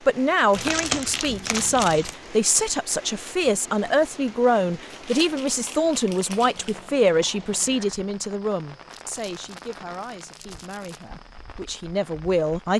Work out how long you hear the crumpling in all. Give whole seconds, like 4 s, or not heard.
6 s.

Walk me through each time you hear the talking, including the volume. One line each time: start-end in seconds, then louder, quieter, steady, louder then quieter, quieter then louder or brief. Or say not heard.
0.1-12.7 quieter.